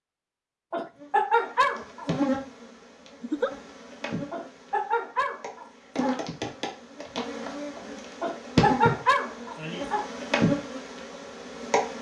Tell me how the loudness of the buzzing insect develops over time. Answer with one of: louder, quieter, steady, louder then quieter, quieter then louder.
quieter then louder.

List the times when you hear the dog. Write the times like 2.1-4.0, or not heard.
0.7-2.1, 4.3-6.2, 8.2-10.1.